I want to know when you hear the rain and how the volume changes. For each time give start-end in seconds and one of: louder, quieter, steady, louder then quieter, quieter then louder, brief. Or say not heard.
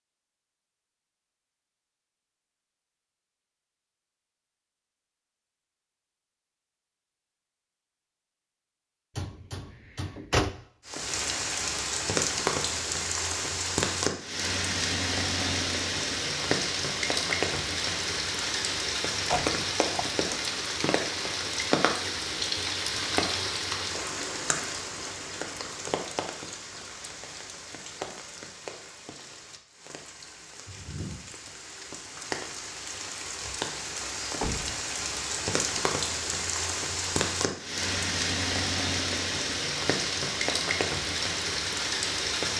10.8-42.5 quieter then louder.